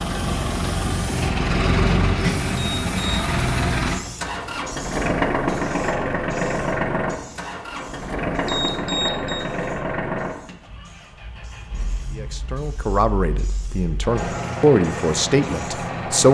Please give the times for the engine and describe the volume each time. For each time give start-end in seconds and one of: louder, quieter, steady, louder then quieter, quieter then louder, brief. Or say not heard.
0.0-16.2 quieter.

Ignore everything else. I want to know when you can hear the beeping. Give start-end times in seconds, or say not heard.
2.5-3.2, 8.4-9.4.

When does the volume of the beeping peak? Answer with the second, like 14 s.
9 s.